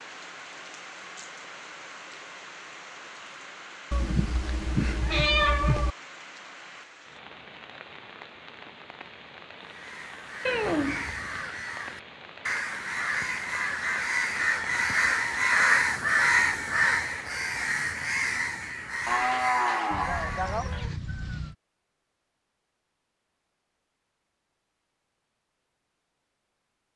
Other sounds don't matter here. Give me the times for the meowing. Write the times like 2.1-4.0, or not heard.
3.9-6.0, 10.4-11.2, 19.9-21.6.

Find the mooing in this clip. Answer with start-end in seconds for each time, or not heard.
19.1-20.9.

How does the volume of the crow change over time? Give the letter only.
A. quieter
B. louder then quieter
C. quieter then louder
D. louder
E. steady
B.